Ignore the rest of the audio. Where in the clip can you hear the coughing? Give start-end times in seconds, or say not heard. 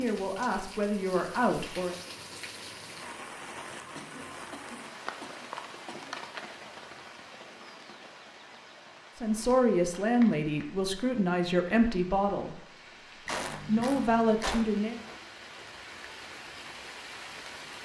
4.0-6.2, 13.2-14.7.